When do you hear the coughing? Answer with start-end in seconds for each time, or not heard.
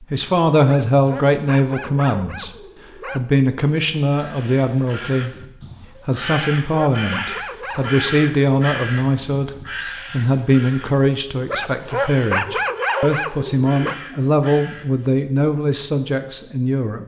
not heard.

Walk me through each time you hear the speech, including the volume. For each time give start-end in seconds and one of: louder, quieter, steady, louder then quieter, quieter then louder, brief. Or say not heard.
0.0-17.0 steady.